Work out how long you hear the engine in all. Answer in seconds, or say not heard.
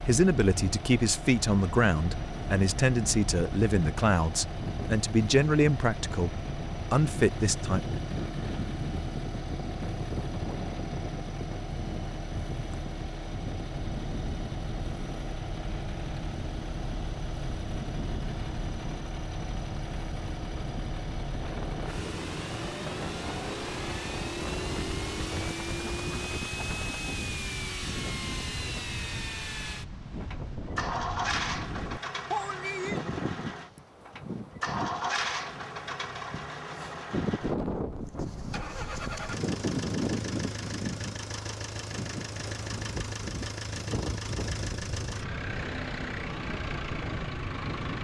48 s.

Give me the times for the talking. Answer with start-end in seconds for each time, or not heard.
0.0-7.8.